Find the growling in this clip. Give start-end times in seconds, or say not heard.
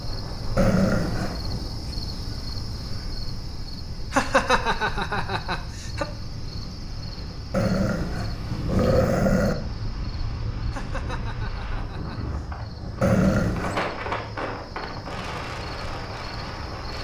0.6-1.7, 7.5-9.6, 13.0-13.9.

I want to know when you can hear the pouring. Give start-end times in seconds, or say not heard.
not heard.